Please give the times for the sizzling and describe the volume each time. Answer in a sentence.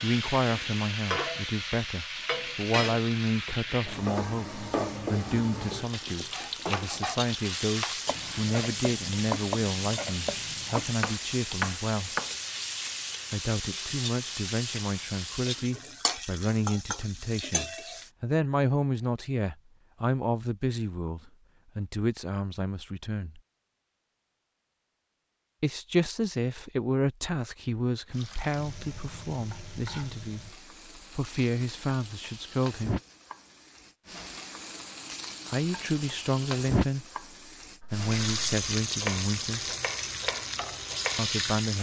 The sizzling can be heard from 0.0 to 18.1 s, at a steady volume; and from 28.1 to 41.7 s, getting louder.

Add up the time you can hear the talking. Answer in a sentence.
The talking can be heard for 34 seconds in total.